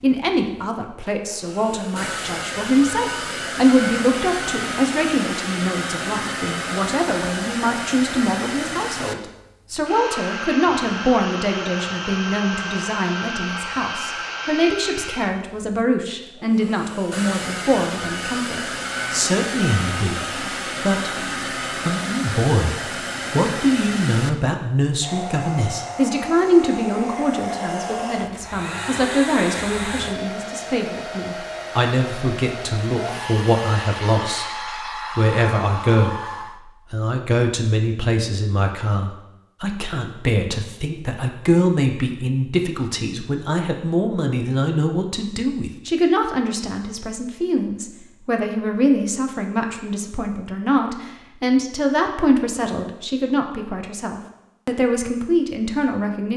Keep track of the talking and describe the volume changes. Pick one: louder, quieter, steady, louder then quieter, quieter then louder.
steady.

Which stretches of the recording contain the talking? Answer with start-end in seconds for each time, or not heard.
0.0-21.1, 21.9-56.3.